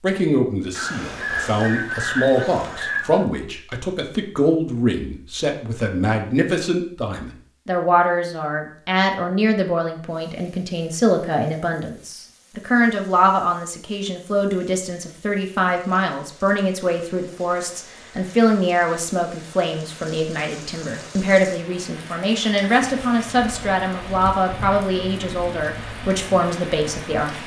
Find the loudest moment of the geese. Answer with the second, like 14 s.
2 s.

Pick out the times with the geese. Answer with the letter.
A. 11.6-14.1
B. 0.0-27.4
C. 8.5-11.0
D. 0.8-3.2
D.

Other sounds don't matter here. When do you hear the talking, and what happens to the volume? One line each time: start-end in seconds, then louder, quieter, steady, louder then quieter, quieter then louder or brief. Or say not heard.
0.0-27.4 steady.